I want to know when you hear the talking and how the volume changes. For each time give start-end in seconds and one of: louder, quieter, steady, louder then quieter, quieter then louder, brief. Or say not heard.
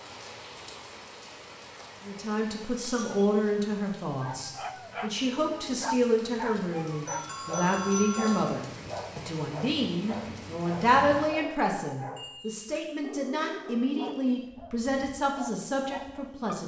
2.0-16.6 steady.